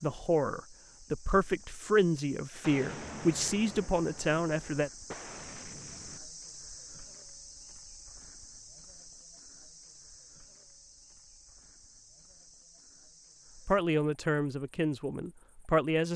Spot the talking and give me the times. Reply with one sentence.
The talking can be heard from 0.0 to 4.9 s and from 13.6 to 16.1 s.